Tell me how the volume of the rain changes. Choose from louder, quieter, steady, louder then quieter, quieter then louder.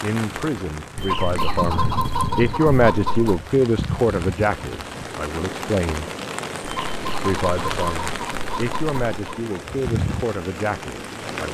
steady.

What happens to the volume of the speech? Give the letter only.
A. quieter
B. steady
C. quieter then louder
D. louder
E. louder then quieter
E.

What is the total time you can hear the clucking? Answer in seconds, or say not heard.
5 s.